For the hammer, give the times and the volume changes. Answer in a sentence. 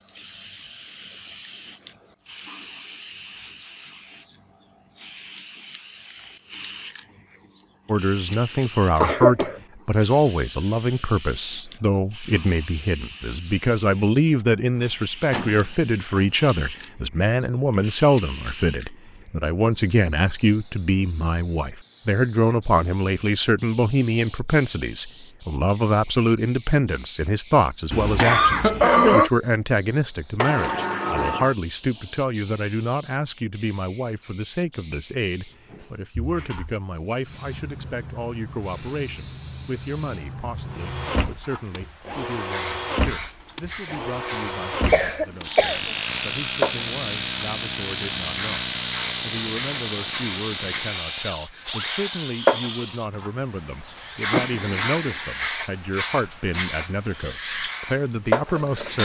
The hammer can't be heard in this clip.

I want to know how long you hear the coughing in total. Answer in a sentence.
You can hear the coughing for 3 seconds altogether.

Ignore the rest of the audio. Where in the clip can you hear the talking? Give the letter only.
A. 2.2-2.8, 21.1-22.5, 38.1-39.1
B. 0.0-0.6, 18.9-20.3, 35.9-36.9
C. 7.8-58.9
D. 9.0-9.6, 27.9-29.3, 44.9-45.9
C.